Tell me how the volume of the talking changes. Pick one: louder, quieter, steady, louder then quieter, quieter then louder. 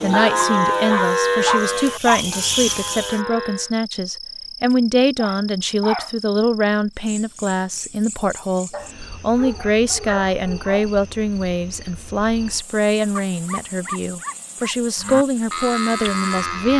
steady.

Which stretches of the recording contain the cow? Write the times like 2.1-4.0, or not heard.
0.0-3.7, 14.9-16.7.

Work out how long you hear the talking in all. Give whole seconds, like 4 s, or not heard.
17 s.